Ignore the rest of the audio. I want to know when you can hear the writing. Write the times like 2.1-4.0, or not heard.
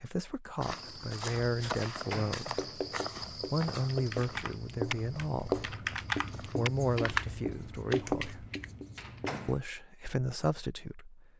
1.4-9.6.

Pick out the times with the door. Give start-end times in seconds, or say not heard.
1.8-2.5, 8.9-9.7.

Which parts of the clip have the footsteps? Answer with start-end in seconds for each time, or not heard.
0.6-7.0.